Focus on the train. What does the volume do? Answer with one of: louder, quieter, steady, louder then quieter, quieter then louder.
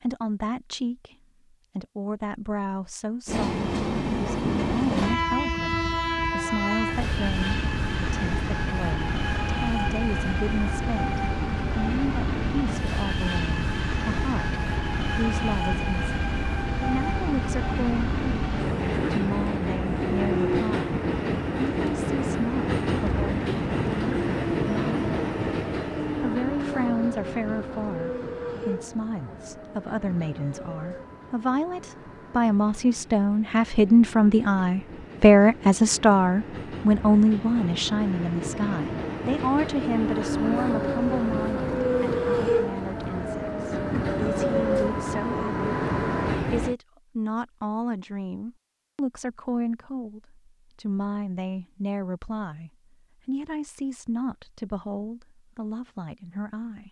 quieter then louder.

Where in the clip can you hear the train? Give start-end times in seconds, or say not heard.
3.2-46.8.